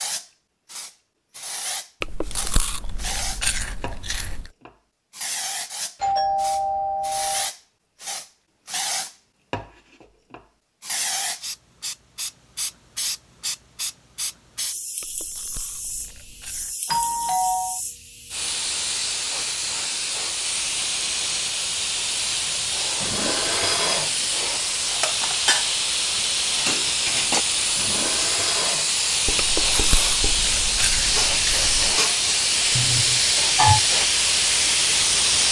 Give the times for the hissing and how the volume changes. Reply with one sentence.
The hissing can be heard from 0.0 to 35.4 s, getting louder.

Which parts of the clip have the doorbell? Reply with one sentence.
You can hear the doorbell from 6.0 to 7.5 s, from 16.9 to 17.8 s and from 32.8 to 33.8 s.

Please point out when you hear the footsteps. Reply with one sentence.
You can't hear the footsteps here.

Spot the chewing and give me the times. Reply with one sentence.
You can hear the chewing from 2.0 to 4.5 s, from 15.0 to 16.8 s and from 29.4 to 31.9 s.